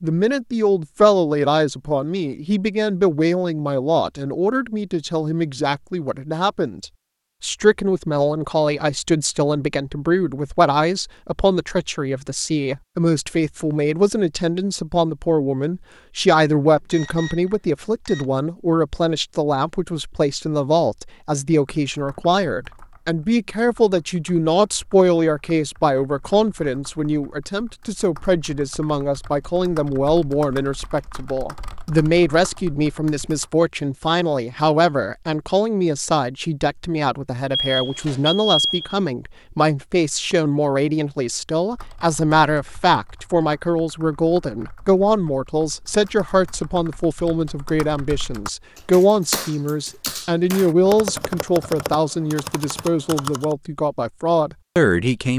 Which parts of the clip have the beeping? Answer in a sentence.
The beeping can be heard from 16.8 to 18.2 s and from 37.5 to 39.0 s.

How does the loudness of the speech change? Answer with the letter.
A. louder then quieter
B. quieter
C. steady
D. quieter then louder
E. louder
C.